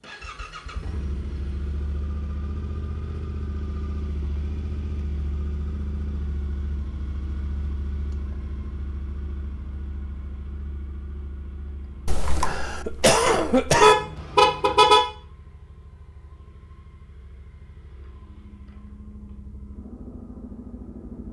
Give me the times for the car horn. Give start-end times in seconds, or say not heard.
13.8-15.0.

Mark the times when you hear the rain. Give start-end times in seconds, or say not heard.
not heard.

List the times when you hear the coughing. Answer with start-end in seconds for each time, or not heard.
12.1-13.9.